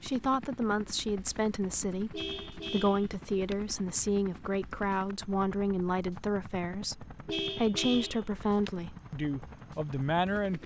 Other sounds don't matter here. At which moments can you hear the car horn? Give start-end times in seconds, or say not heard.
2.1-3.5, 7.2-8.7.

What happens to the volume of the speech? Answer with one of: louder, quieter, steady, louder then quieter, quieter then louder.
steady.